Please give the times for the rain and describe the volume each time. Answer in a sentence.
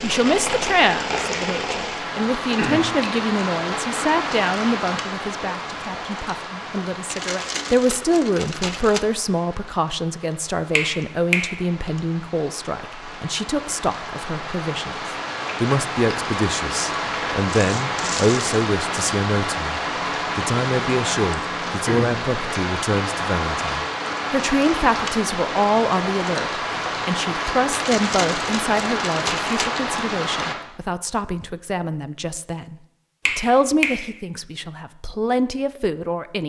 The rain can be heard from 0.0 to 30.6 s, getting quieter then louder.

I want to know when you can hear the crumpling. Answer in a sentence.
You can hear the crumpling from 7.0 to 9.0 s, from 17.5 to 18.5 s and from 27.7 to 29.7 s.